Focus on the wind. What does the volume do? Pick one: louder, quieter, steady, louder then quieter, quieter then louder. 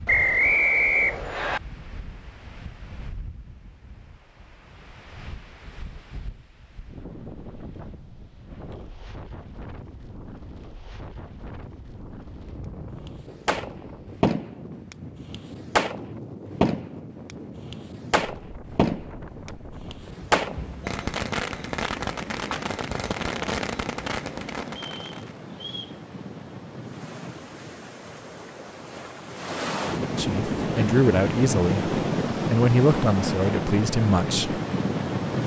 louder.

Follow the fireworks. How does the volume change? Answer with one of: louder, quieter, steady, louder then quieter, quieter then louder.
quieter.